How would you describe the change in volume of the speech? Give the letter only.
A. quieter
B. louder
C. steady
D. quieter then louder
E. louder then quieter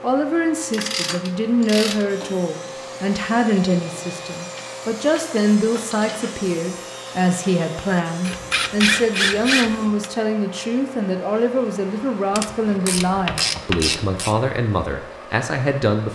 C.